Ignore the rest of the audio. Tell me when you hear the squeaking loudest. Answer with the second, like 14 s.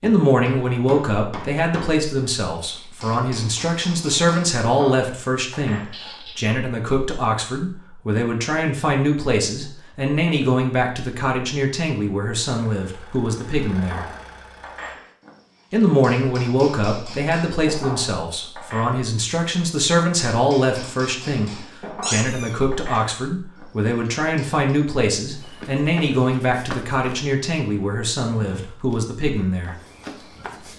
22 s.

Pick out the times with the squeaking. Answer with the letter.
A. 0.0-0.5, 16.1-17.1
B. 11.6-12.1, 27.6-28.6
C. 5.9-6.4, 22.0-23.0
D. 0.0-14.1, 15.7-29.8
C.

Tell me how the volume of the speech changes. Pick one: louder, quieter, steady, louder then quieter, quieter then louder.
steady.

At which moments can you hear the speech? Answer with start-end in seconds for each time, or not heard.
0.0-14.1, 15.7-29.8.